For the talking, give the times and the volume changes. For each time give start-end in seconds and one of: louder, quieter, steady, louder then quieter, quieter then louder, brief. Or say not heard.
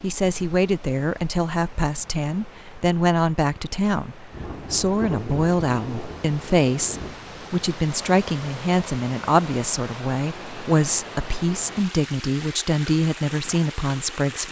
0.0-14.4 steady.